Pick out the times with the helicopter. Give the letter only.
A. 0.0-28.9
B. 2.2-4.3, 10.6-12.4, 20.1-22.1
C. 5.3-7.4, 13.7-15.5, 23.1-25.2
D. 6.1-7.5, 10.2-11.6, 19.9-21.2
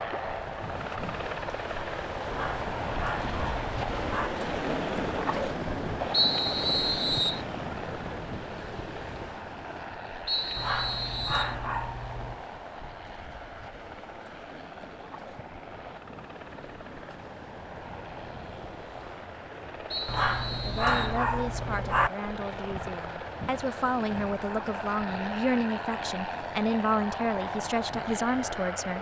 A.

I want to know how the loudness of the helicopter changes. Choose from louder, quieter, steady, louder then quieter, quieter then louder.
quieter then louder.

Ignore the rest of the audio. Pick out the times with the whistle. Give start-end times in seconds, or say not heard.
6.1-7.5, 10.2-11.6, 19.9-21.2.